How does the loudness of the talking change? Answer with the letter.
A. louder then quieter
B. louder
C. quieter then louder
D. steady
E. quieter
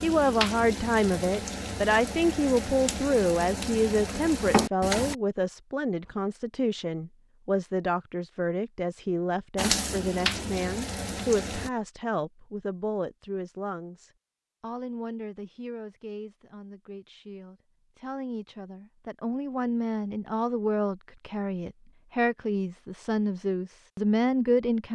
C.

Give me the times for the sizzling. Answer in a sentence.
You can hear the sizzling from 0.0 to 5.2 s and from 9.6 to 11.7 s.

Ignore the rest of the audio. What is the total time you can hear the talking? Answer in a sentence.
You can hear the talking for 25 seconds altogether.